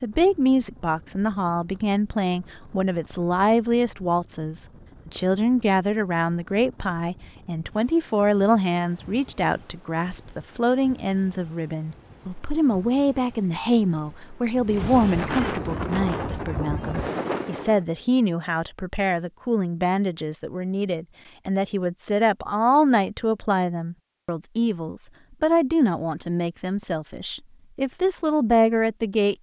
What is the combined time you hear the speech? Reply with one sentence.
You can hear the speech for 29 seconds altogether.